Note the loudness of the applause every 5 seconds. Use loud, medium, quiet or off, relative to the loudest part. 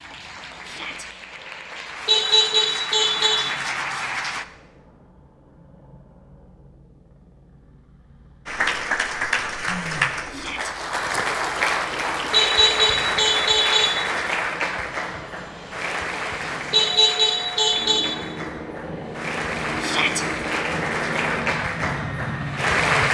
medium, loud, loud, medium, loud.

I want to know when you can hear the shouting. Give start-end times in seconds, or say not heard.
0.6-1.1, 10.3-10.8, 19.8-20.2.